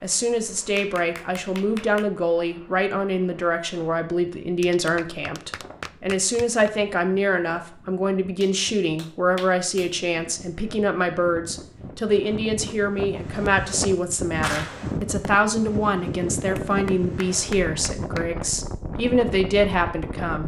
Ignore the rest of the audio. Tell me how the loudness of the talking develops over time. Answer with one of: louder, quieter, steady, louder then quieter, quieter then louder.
steady.